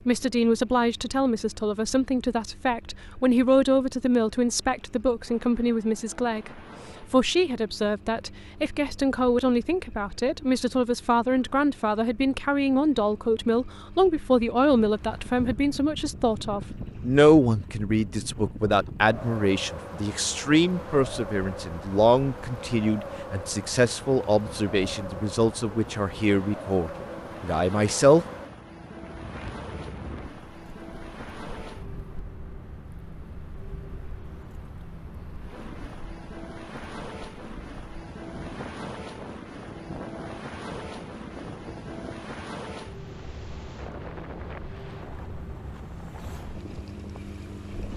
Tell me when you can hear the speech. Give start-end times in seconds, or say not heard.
0.1-28.2.